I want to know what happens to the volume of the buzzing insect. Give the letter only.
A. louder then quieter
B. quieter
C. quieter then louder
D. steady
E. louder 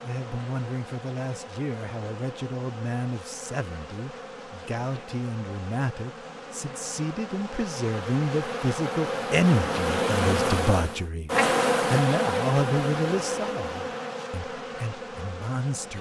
A.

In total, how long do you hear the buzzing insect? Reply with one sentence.
The buzzing insect can be heard for 16 seconds in total.